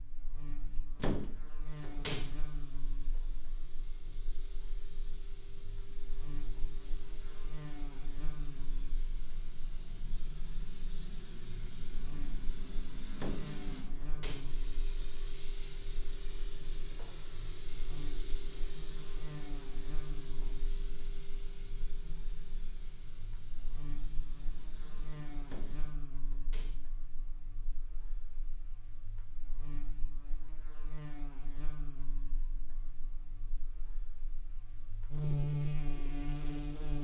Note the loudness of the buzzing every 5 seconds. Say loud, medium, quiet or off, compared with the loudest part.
quiet, quiet, quiet, quiet, quiet, quiet, quiet, loud.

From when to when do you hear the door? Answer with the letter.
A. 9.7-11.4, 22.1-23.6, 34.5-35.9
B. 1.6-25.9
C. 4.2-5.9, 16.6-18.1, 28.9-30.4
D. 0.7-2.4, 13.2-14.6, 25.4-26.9
D.